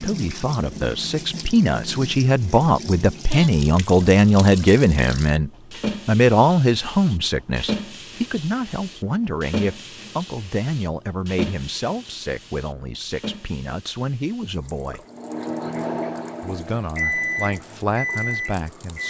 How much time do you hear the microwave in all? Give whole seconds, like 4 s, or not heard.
4 s.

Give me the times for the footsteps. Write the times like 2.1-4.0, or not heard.
not heard.